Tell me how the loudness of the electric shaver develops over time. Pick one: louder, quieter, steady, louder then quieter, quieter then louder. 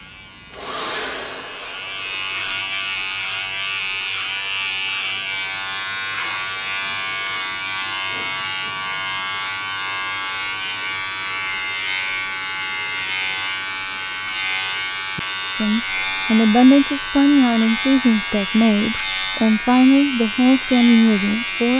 steady.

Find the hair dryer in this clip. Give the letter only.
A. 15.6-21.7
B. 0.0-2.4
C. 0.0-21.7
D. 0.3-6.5
B.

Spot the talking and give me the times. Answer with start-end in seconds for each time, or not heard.
15.6-21.7.